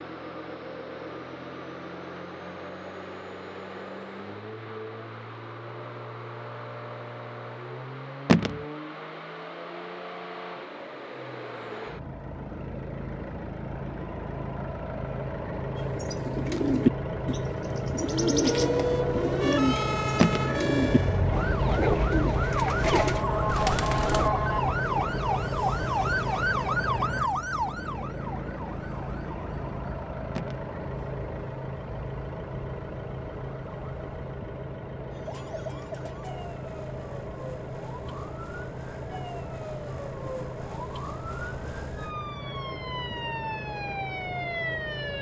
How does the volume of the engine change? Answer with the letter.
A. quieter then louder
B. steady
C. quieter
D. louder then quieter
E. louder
D.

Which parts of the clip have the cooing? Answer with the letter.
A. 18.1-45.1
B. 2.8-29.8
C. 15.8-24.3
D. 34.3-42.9
C.